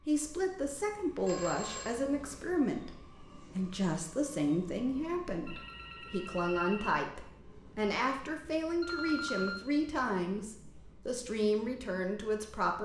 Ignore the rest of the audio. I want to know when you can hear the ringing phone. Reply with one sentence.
You can hear the ringing phone from 1.2 to 2.0 s, from 5.5 to 7.0 s and from 8.8 to 9.7 s.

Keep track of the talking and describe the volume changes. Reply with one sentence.
The volume of the talking stays about the same.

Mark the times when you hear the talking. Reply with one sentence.
The talking can be heard from 0.1 to 12.8 s.